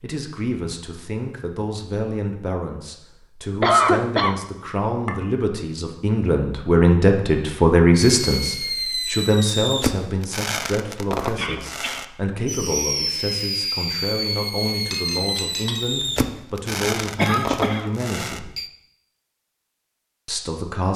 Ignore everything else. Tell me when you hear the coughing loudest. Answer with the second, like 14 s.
4 s.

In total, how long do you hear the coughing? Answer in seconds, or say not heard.
2 s.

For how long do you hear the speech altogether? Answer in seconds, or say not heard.
19 s.